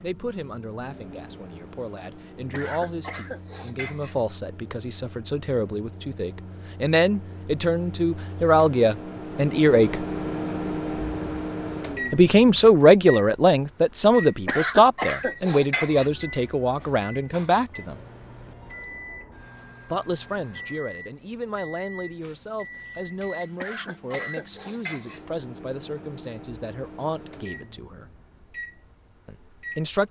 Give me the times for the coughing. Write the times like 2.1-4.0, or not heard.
2.5-4.3, 14.4-16.1, 23.6-25.4.